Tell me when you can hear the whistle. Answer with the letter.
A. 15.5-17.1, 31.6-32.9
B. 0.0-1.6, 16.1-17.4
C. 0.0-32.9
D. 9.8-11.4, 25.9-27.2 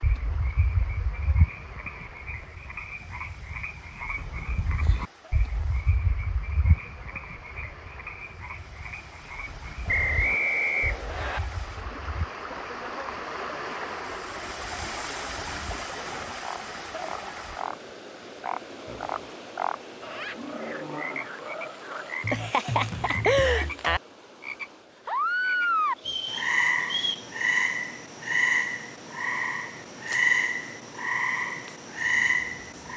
D.